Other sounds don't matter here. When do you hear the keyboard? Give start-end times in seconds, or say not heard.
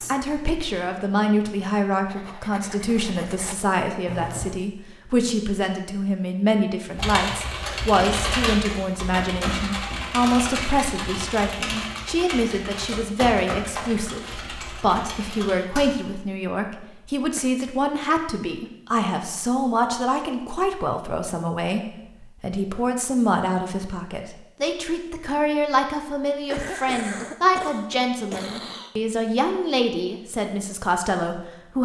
7.0-15.9.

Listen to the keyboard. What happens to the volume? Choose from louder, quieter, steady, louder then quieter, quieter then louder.
quieter.